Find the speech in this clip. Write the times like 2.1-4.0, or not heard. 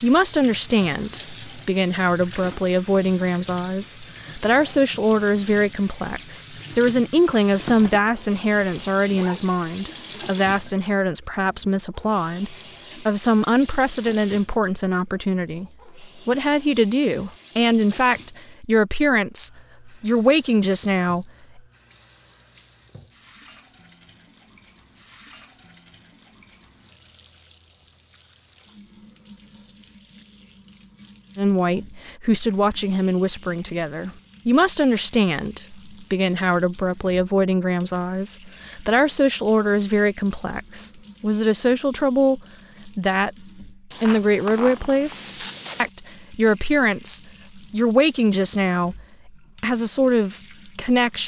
0.0-21.6, 31.4-51.2.